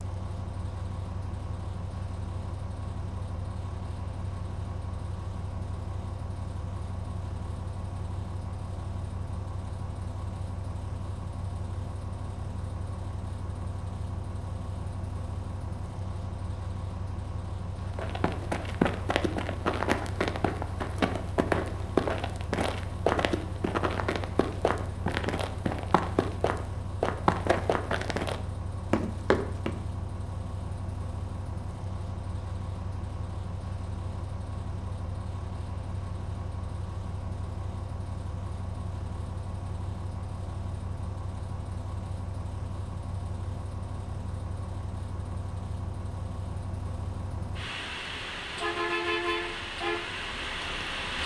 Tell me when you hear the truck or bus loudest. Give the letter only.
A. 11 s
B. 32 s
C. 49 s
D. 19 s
C.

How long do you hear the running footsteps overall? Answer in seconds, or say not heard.
12 s.